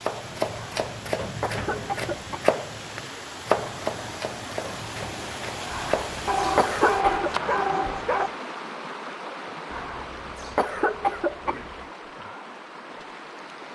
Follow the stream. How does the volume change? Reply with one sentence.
The loudness of the stream goes up, then down.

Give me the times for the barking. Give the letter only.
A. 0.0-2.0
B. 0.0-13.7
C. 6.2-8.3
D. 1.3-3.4
C.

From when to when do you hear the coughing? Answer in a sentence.
You can hear the coughing from 0.6 to 2.5 s, from 5.7 to 7.3 s and from 9.7 to 11.8 s.